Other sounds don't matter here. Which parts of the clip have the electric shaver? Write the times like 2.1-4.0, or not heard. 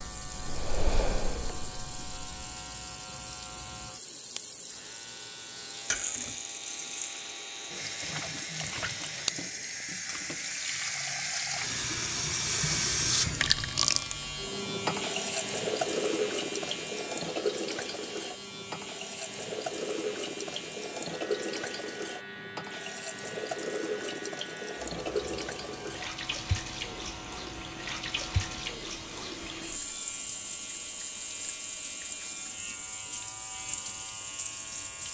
0.0-35.0.